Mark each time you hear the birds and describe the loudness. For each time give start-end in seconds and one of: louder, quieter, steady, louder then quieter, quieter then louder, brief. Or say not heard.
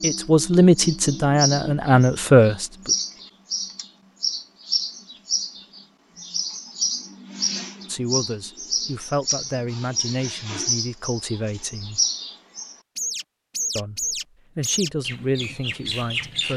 0.0-16.5 steady.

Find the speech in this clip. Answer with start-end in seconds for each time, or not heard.
0.0-3.0, 7.8-12.0, 13.8-16.5.